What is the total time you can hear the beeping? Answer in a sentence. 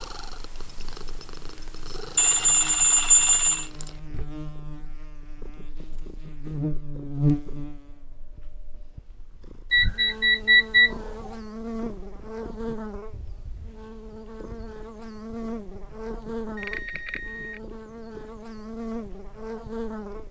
You can hear the beeping for 4 seconds altogether.